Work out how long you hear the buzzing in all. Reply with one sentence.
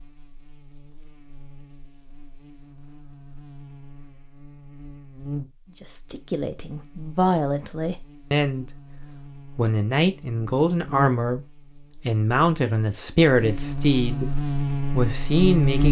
You can hear the buzzing for 16 seconds altogether.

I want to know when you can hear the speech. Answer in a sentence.
The speech can be heard from 5.8 to 8.7 s, from 9.6 to 11.4 s, from 12.1 to 14.3 s and from 14.9 to 15.8 s.